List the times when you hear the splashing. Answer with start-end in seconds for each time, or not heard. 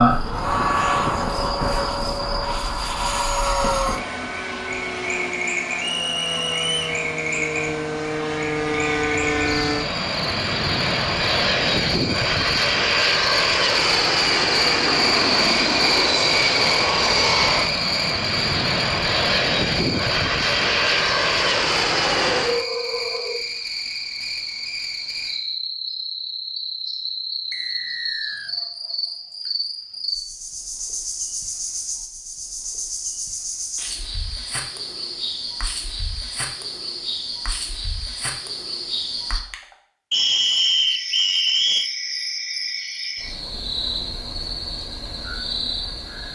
not heard.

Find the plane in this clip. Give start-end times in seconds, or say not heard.
0.0-22.6.